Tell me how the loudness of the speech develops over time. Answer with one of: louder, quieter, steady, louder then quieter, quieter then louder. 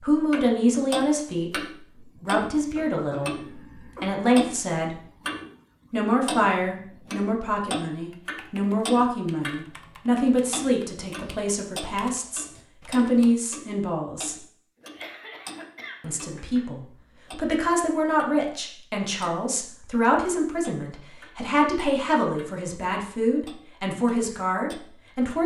steady.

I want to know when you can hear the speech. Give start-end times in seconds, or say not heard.
0.0-5.1, 5.9-14.4, 16.0-25.4.